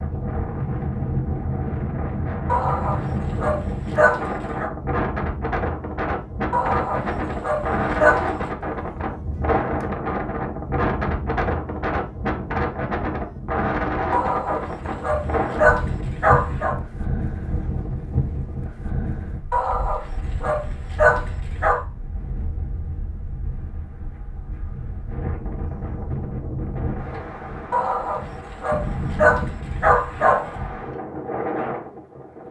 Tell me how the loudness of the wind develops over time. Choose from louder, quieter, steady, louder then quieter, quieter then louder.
quieter then louder.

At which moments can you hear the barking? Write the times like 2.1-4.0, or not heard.
2.5-4.7, 6.5-8.3, 14.1-16.8, 19.5-21.8, 27.7-30.6.